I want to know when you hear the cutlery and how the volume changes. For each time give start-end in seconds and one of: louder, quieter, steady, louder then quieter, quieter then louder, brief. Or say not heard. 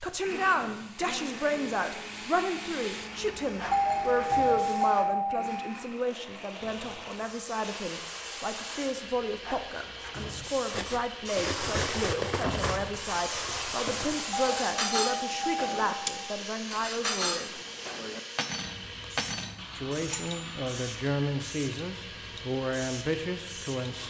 10.6-20.4 quieter then louder.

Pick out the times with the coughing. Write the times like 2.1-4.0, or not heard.
not heard.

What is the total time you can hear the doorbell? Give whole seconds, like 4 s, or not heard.
4 s.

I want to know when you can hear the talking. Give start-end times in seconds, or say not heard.
0.0-17.5, 19.8-24.0.